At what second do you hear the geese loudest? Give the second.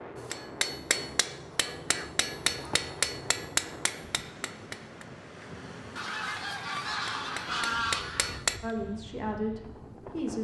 8 s.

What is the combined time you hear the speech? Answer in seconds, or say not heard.
2 s.